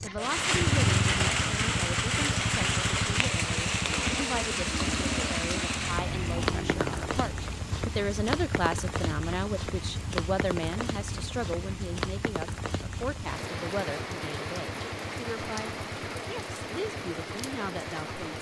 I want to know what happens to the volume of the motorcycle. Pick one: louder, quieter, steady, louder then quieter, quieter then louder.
quieter.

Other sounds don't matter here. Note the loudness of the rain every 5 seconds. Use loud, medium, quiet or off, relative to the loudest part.
loud, medium, medium, medium.